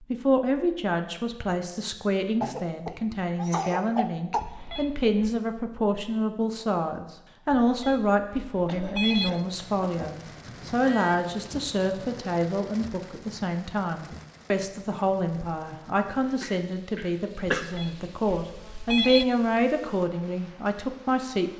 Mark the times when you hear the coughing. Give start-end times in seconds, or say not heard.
2.4-4.4, 8.7-10.2, 16.4-17.6.